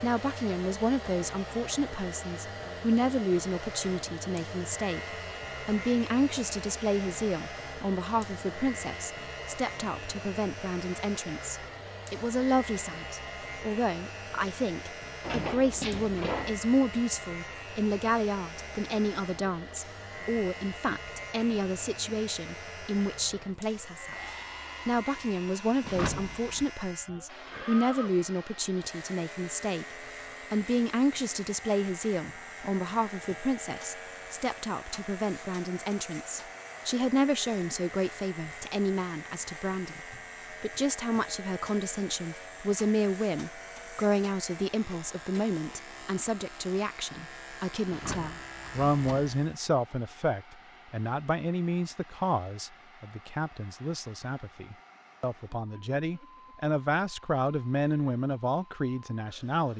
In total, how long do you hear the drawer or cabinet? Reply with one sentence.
The drawer or cabinet can be heard for 4 seconds in total.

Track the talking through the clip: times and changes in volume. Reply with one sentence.
You can hear the talking from 0.0 to 24.1 s, at a steady volume; and from 24.9 to 59.7 s, at a steady volume.